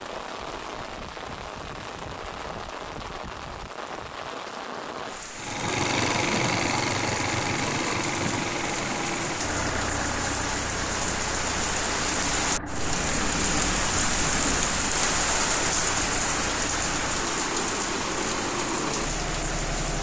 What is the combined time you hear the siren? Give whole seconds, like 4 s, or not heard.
not heard.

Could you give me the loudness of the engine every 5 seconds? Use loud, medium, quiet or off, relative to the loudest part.
off, loud, medium, medium.